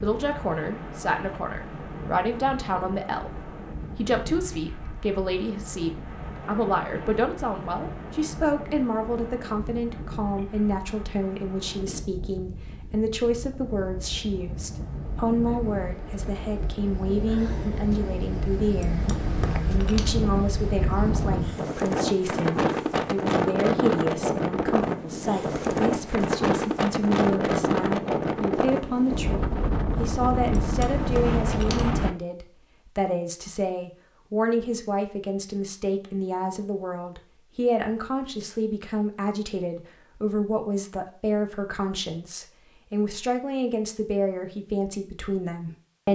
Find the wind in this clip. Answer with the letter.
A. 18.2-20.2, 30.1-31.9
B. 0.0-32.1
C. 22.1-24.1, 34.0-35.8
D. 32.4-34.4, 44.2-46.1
B.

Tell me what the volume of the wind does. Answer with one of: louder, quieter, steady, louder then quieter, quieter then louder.
louder.